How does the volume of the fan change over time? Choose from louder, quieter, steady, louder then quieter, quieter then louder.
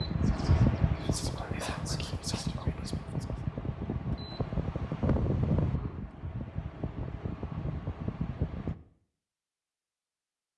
quieter.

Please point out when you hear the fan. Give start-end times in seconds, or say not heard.
0.0-8.8.